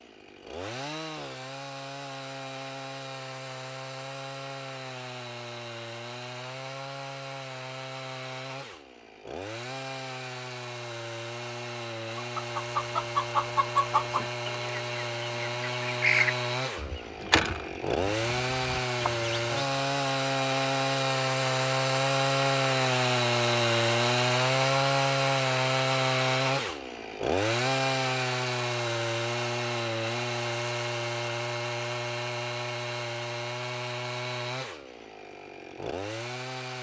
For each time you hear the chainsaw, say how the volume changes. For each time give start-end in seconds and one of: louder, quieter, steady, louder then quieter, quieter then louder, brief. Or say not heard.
0.0-36.7 louder then quieter.